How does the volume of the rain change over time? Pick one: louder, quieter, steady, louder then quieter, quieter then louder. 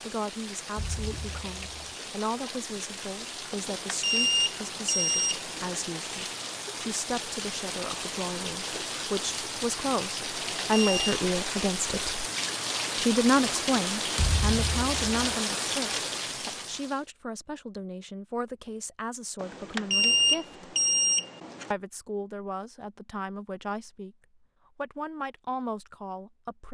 louder.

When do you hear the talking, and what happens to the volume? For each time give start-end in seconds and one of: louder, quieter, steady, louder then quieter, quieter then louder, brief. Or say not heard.
0.0-12.2 louder
12.9-20.6 quieter
21.7-24.1 brief
24.8-26.6 brief.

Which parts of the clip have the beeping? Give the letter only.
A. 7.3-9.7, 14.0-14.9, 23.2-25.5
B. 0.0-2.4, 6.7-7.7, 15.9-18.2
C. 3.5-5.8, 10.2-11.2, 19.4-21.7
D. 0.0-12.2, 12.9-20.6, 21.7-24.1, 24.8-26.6
C.